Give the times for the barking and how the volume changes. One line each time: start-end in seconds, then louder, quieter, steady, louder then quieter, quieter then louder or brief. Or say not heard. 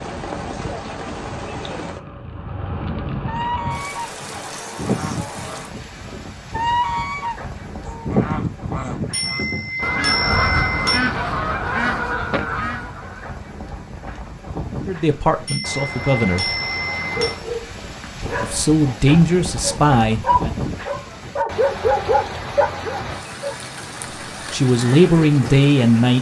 17.1-23.6 louder.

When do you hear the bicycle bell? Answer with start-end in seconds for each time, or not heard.
9.1-11.1, 15.4-17.4.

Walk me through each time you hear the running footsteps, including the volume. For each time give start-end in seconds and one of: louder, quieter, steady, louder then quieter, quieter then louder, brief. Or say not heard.
not heard.